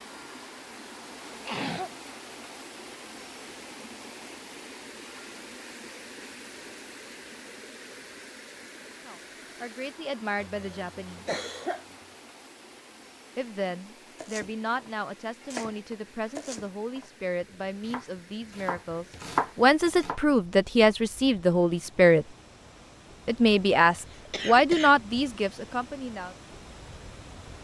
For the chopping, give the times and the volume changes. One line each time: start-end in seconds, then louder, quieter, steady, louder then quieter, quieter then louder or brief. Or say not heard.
14.2-20.2 quieter then louder.